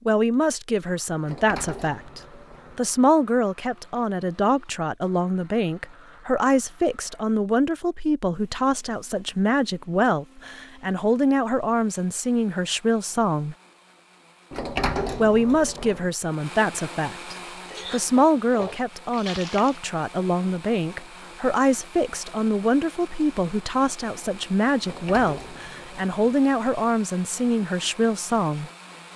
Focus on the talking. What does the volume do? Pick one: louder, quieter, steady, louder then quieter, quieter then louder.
steady.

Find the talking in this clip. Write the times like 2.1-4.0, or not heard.
0.1-13.6, 15.2-28.7.